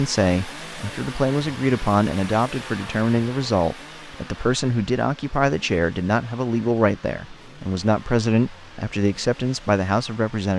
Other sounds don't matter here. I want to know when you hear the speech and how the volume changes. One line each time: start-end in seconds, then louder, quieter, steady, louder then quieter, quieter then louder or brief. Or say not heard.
0.0-10.5 steady.